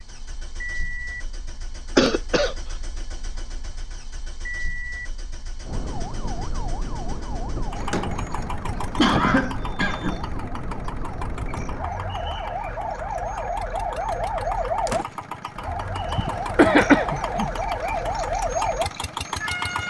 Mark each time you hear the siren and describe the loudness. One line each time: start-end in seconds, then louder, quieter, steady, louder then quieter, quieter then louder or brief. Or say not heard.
5.6-19.8 louder.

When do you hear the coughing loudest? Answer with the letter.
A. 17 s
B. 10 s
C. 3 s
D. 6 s
A.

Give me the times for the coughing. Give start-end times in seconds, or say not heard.
1.9-2.5, 8.9-10.2, 16.1-17.5.